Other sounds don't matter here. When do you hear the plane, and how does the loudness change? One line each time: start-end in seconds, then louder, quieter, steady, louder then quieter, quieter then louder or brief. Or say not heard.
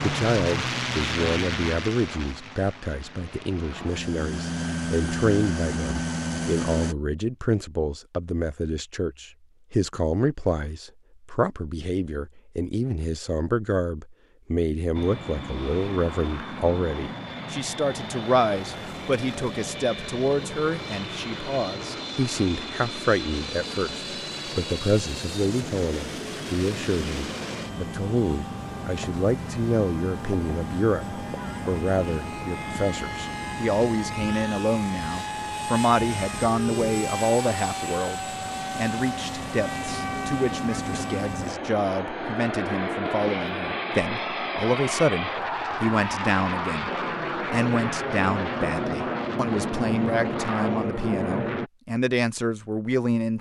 0.0-7.0 quieter then louder
14.9-51.7 louder.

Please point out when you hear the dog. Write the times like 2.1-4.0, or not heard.
not heard.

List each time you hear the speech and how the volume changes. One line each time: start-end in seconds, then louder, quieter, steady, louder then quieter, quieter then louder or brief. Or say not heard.
0.0-53.3 steady.